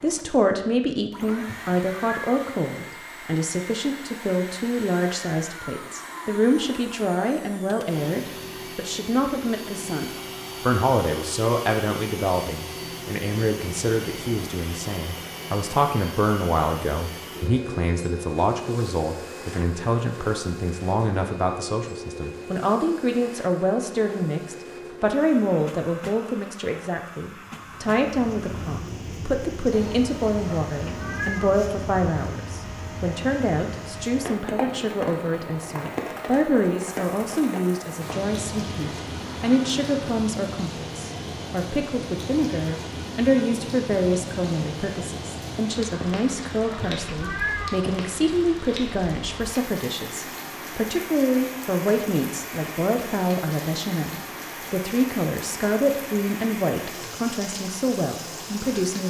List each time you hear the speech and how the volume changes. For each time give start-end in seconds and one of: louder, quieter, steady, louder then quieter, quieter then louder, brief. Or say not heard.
0.0-59.0 steady.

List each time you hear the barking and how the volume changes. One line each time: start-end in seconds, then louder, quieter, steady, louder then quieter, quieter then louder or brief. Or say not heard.
not heard.